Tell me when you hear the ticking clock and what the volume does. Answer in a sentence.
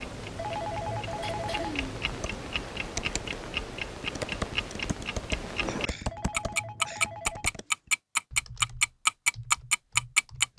The ticking clock can be heard from 0.0 to 10.4 s, getting louder.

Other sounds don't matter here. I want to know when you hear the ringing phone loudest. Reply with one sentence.
The volume of the ringing phone peaks at 1 second.